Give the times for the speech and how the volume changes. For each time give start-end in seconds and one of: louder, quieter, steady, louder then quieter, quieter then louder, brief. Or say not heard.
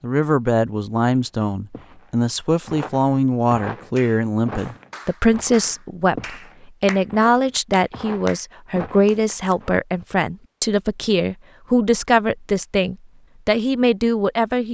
0.0-14.6 steady.